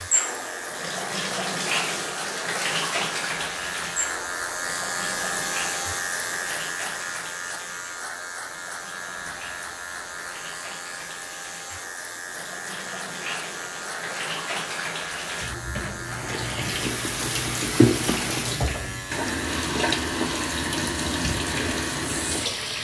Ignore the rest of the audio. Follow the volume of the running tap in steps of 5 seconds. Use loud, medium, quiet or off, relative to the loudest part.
loud, quiet, medium, loud, loud.